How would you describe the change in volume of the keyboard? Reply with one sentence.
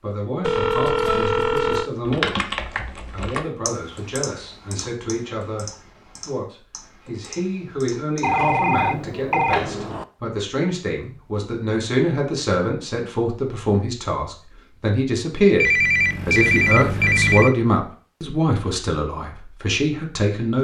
The volume of the keyboard goes down.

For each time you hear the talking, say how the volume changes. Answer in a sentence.
The talking can be heard from 0.0 to 20.5 s, getting louder.